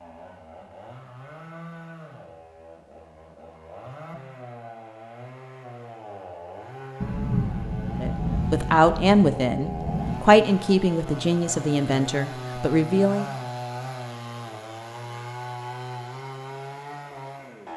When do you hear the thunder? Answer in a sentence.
You can hear the thunder from 7.0 to 10.2 s.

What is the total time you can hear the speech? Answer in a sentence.
You can hear the speech for 5 seconds altogether.